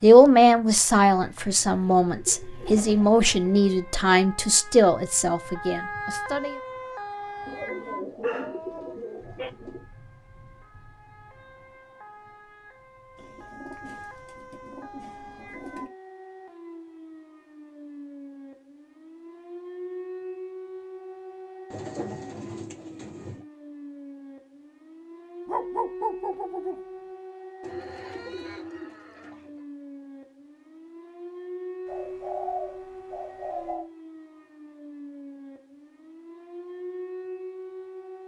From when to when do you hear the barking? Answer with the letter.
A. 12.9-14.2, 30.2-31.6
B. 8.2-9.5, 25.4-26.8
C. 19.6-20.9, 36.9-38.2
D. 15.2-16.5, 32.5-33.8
B.